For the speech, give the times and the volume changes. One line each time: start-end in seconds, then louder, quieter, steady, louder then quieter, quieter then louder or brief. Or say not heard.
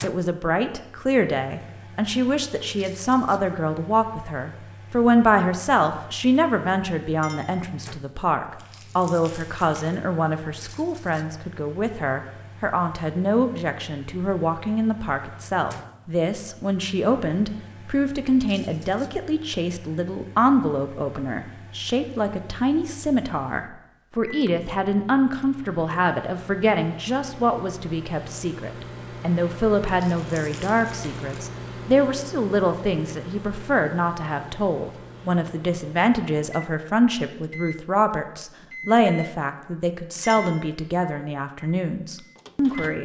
0.0-43.0 steady.